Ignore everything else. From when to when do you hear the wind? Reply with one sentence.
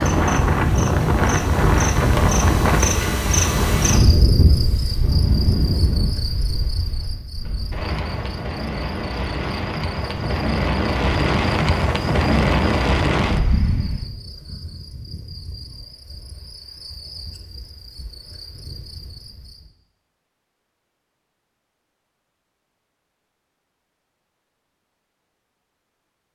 You can hear the wind from 0.0 to 14.1 s.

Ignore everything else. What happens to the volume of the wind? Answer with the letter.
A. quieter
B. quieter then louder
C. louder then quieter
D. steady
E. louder
B.